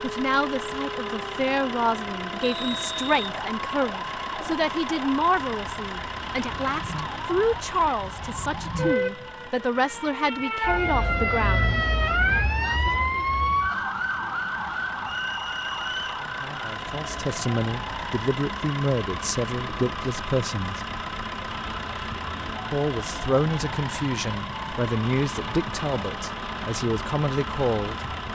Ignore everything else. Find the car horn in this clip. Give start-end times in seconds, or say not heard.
not heard.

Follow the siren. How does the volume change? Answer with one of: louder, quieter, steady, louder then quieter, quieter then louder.
louder then quieter.